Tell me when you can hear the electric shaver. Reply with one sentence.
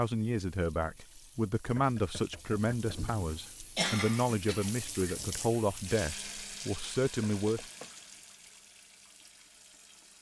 You can't hear the electric shaver here.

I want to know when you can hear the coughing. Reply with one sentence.
The coughing can be heard from 2.9 to 4.7 s.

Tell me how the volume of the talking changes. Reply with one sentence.
The loudness of the talking stays about the same.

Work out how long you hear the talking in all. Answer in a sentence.
The talking can be heard for 8 seconds in total.